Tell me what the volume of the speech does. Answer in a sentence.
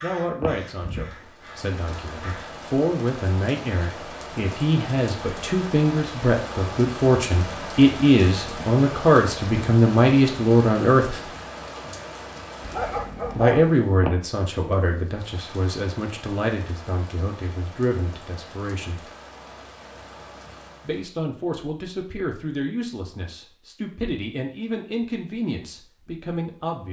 The volume of the speech goes up, then down.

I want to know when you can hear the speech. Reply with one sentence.
The speech can be heard from 0.0 to 11.2 s, from 13.3 to 19.1 s and from 20.9 to 26.8 s.